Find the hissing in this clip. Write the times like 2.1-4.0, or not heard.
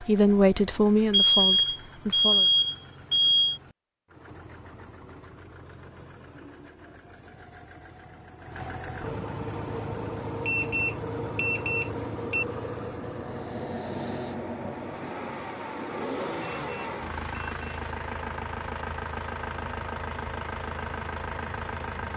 9.7-17.9.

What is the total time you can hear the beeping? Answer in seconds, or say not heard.
6 s.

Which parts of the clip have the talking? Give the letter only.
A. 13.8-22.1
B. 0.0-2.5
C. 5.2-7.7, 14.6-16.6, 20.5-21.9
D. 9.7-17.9
B.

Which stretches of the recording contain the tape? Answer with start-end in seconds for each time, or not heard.
not heard.